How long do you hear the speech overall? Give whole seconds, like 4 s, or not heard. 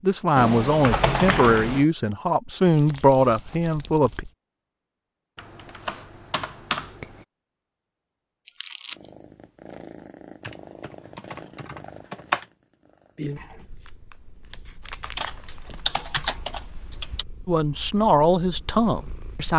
6 s.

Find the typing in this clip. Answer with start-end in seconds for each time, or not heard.
0.3-1.9, 5.3-7.2, 10.4-12.4, 15.2-17.2.